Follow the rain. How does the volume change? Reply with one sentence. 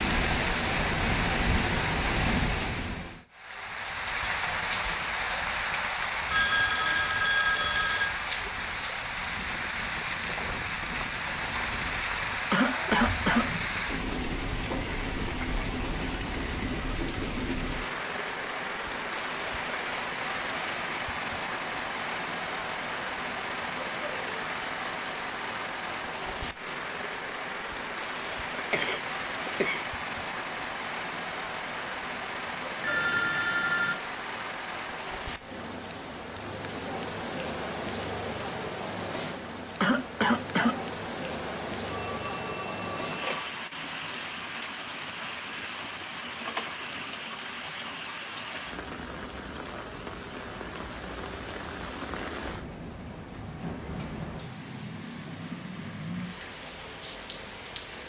The loudness of the rain goes down.